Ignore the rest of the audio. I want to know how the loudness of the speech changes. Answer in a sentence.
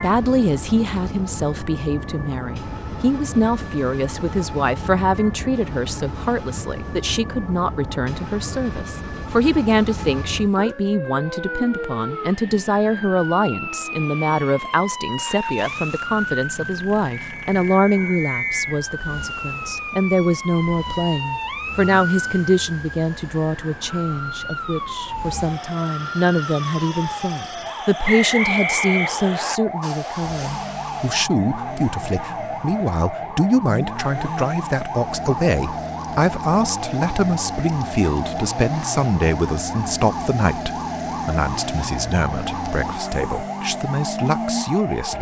The loudness of the speech stays about the same.